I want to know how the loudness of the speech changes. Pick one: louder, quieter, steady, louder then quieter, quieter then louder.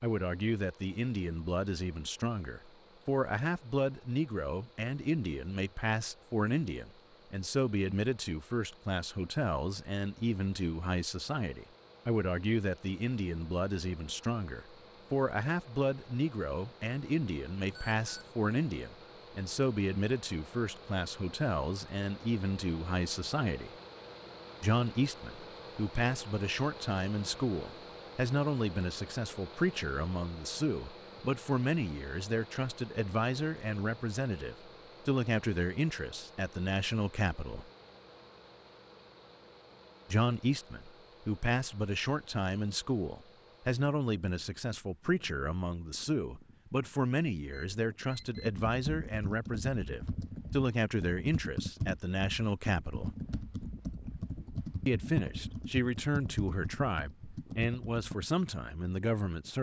steady.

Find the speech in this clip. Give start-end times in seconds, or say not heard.
0.0-23.7, 24.6-37.7, 40.1-53.1, 54.9-59.5.